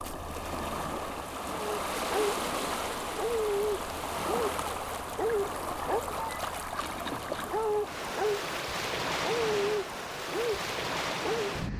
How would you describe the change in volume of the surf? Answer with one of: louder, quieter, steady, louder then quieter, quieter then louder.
steady.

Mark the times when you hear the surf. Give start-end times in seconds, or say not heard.
0.0-11.7.